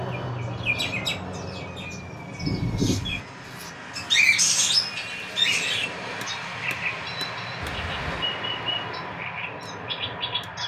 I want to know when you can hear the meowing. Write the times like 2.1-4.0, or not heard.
7.6-8.2.